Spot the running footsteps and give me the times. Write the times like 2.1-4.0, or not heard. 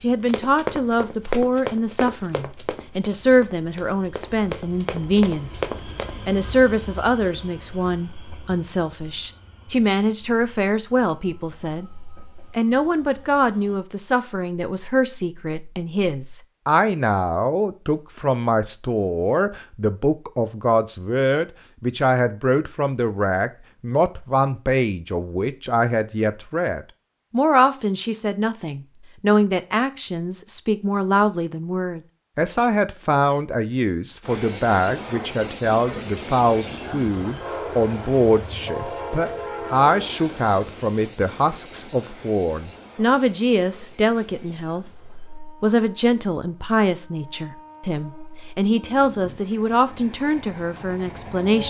0.2-6.2.